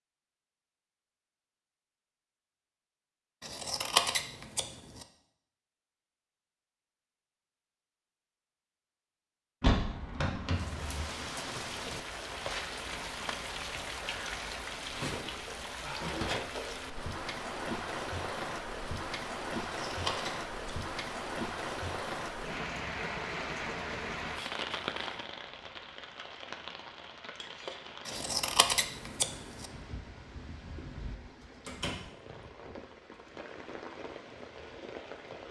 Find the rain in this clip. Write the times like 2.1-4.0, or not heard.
10.5-35.4.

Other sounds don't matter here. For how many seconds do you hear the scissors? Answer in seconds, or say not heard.
4 s.